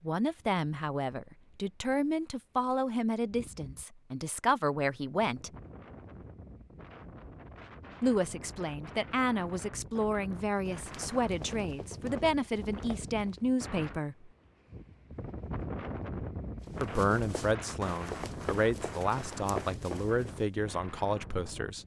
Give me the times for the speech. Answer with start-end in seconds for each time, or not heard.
0.0-5.5, 8.0-14.3, 16.8-21.8.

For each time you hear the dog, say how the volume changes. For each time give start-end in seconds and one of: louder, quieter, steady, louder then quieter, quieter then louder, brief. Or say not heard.
not heard.